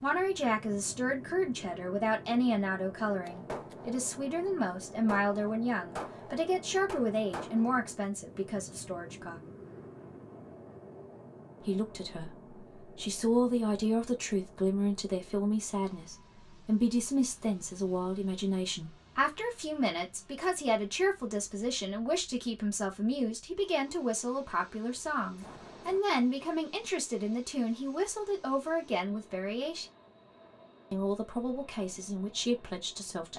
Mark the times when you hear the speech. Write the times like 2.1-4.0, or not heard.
0.0-9.4, 11.6-29.9, 30.9-33.3.